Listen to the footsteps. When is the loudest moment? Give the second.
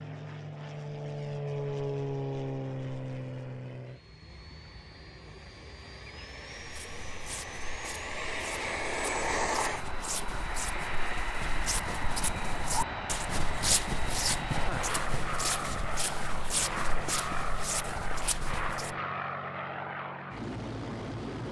14 s.